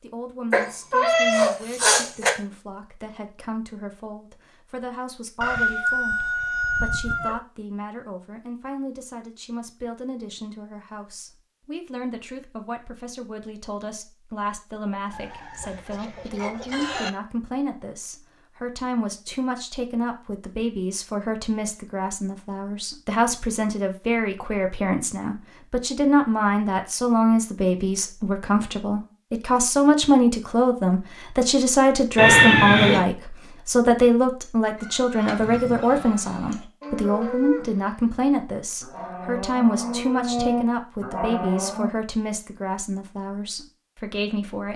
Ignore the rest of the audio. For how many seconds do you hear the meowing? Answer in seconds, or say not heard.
3 s.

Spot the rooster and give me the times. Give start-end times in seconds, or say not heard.
5.4-7.4, 15.1-17.1, 34.8-36.4.